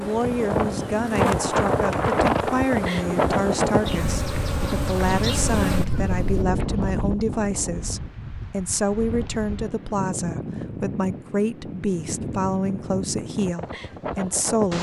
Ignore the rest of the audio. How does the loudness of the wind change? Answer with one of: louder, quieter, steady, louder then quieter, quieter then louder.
quieter.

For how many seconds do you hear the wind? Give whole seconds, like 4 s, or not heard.
15 s.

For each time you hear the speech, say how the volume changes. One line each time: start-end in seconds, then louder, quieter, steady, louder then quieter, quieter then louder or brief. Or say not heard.
0.0-14.7 steady.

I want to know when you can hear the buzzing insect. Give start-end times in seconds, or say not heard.
0.0-6.5.